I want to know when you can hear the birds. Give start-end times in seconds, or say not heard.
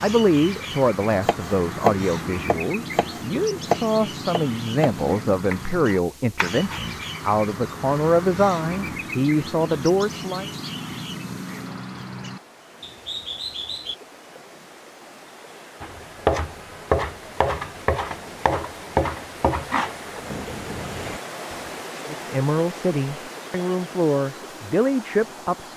0.0-14.0.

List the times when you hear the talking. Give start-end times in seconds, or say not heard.
0.0-10.4, 22.1-25.7.